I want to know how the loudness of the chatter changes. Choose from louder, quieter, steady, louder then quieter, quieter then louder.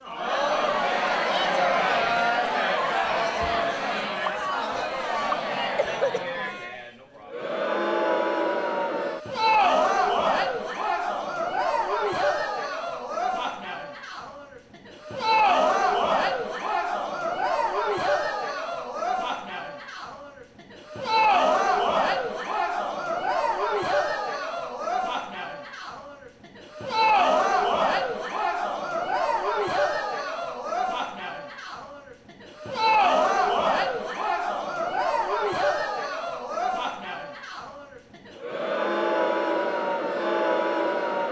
steady.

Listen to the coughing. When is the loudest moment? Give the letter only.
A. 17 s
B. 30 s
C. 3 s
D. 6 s
D.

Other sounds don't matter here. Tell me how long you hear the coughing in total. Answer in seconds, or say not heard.
2 s.